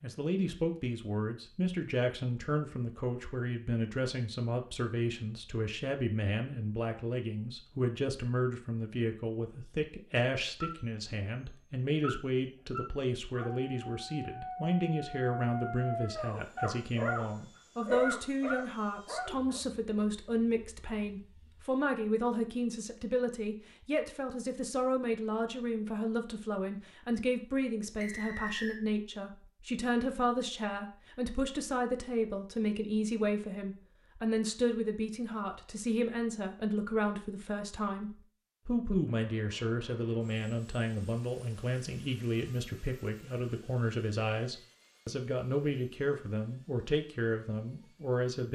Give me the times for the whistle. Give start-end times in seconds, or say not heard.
28.0-28.8.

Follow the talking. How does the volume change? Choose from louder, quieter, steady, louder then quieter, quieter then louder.
steady.